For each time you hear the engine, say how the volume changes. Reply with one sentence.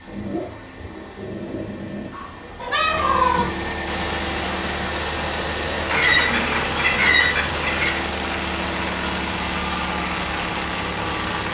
You can hear the engine from 0.0 to 11.4 s, getting louder.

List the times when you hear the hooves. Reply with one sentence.
You can't hear the hooves here.